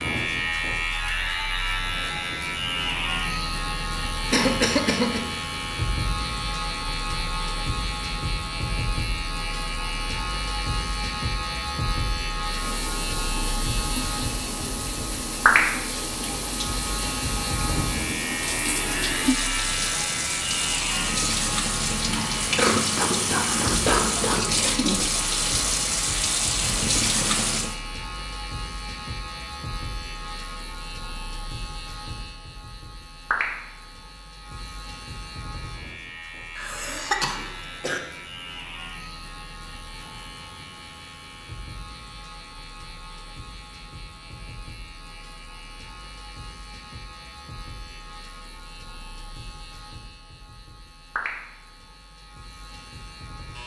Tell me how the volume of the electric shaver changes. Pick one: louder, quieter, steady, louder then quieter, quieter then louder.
quieter.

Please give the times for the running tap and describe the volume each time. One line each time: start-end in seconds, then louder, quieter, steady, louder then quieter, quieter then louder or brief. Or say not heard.
12.4-27.8 louder.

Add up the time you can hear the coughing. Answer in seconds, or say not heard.
4 s.